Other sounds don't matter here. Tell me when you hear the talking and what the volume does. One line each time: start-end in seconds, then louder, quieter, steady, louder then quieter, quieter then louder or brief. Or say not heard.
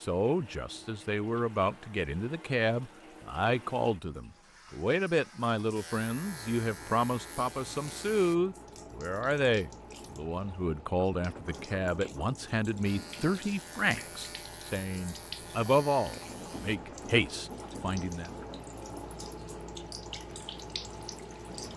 0.0-18.3 steady.